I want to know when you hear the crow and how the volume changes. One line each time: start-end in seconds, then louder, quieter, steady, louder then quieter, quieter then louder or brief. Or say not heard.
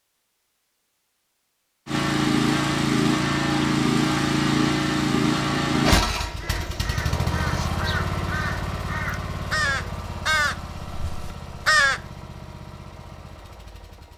6.3-12.0 louder then quieter.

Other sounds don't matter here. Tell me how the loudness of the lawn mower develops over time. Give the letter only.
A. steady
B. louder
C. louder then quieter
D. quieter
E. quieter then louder
D.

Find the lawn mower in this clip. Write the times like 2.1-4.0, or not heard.
1.9-14.1.